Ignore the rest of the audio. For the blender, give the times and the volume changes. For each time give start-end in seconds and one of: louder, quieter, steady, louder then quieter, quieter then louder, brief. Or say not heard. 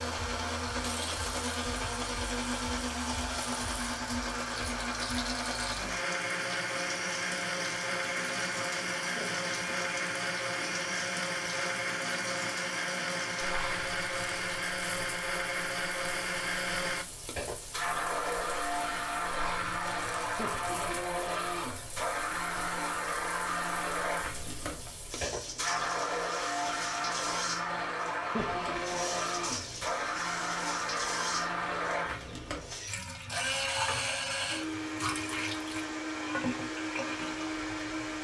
0.0-38.1 steady.